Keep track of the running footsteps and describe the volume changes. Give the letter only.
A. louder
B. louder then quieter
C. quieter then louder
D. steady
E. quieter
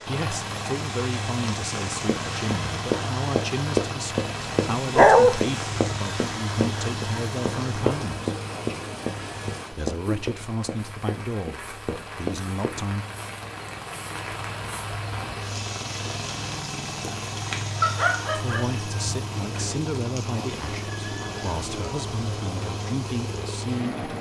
E.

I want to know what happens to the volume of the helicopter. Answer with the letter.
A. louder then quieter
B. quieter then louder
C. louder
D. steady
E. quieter
B.